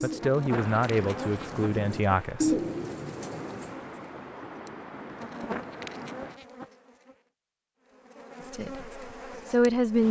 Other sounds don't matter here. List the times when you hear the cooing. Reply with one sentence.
The cooing can be heard from 0.0 to 3.8 s.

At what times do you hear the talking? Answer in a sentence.
The talking can be heard from 0.0 to 2.5 s and from 8.4 to 10.0 s.